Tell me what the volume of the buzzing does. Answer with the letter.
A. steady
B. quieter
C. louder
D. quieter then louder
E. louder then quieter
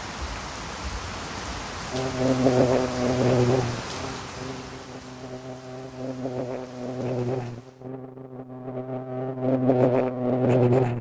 D.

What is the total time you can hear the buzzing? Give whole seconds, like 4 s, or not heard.
9 s.